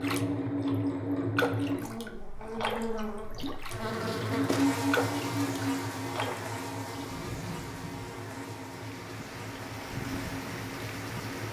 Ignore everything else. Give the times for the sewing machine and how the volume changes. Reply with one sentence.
You can hear the sewing machine from 0.0 to 11.4 s, getting quieter.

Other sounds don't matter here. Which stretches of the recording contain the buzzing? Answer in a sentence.
The buzzing can be heard from 1.6 to 11.2 s.